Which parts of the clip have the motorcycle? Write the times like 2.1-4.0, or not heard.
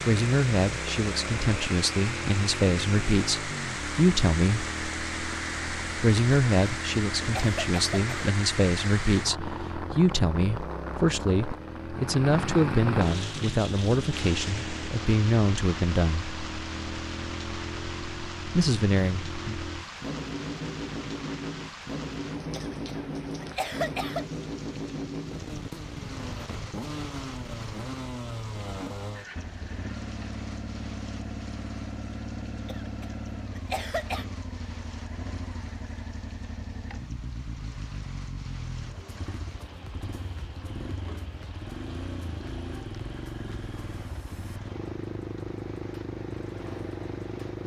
0.0-47.6.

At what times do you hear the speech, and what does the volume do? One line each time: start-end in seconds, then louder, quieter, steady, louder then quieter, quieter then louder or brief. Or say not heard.
0.1-4.7 louder
6.0-16.2 steady
18.5-19.6 brief.